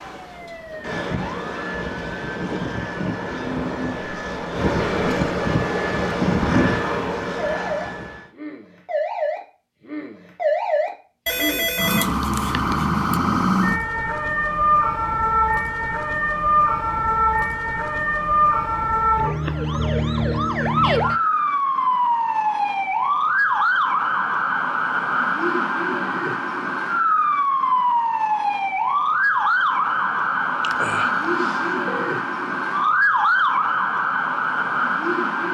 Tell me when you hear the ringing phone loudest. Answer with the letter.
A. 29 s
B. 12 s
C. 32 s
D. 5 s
B.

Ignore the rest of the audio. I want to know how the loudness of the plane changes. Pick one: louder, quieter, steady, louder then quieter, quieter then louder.
louder.